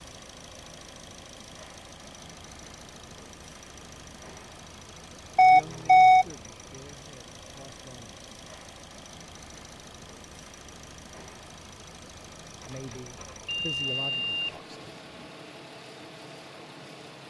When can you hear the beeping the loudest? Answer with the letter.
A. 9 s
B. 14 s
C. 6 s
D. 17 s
C.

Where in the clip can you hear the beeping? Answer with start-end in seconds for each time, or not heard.
5.3-6.2, 12.7-15.3.